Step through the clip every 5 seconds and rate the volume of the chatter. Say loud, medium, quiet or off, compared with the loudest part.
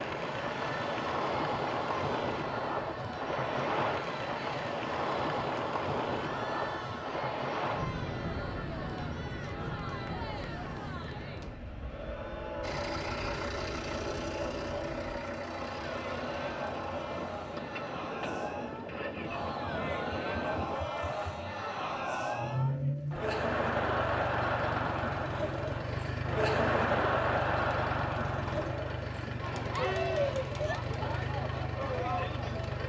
medium, medium, medium, medium, loud, loud, loud.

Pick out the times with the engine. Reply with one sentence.
You can hear the engine from 12.6 to 32.8 s.